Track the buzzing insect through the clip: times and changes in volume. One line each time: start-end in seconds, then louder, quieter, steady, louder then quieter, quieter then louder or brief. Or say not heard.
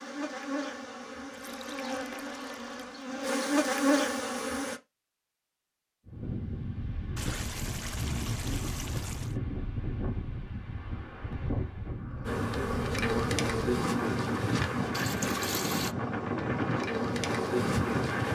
0.0-4.8 louder
12.2-18.3 quieter then louder.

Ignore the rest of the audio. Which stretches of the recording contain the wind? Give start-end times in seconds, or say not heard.
6.0-18.3.